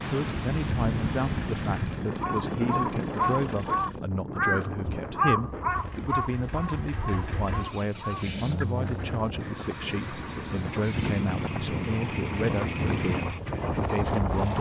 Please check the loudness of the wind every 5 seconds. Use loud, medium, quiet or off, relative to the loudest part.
loud, medium, loud.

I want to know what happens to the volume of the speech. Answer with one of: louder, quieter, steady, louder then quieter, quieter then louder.
steady.